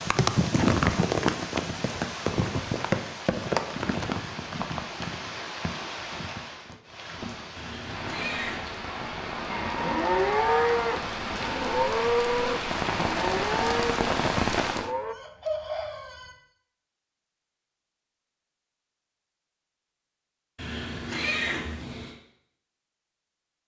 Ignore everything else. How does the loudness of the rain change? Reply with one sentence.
The loudness of the rain goes down, then up.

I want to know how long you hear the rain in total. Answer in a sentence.
The rain can be heard for 15 seconds in total.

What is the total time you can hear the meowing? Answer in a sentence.
You can hear the meowing for 3 seconds altogether.